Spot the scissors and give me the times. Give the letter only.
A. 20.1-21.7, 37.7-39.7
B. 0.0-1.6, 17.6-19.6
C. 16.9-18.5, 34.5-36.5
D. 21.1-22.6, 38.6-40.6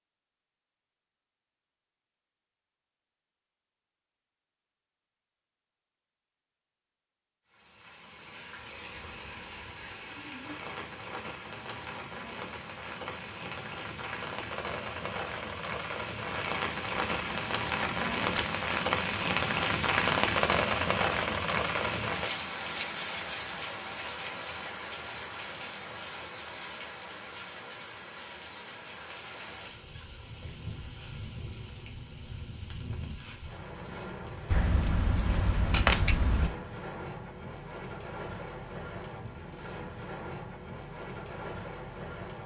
C.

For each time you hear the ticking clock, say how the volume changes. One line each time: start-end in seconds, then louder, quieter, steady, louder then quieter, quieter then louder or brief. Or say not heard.
not heard.